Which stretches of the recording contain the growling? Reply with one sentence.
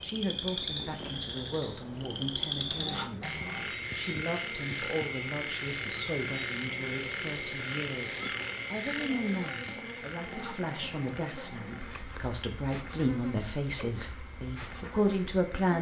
The growling can be heard from 2.6 to 3.7 s and from 10.2 to 11.9 s.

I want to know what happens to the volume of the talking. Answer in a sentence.
The loudness of the talking goes up.